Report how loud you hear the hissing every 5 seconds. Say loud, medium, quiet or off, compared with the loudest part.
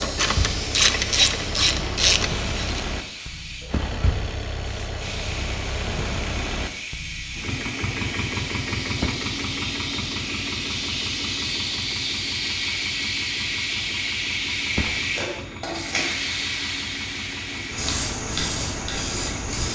medium, medium, loud, loud.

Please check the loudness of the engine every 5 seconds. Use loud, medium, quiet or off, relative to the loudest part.
loud, loud, medium, medium.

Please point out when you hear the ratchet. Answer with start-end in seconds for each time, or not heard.
0.0-2.9.